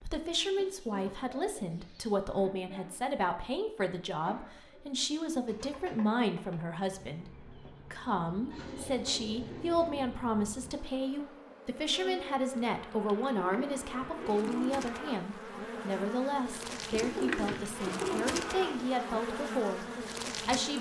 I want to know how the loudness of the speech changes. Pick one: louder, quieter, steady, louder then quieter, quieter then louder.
steady.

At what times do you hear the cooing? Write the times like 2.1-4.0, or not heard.
0.3-2.1, 4.2-6.0, 8.5-10.1, 13.3-14.8, 16.9-18.9.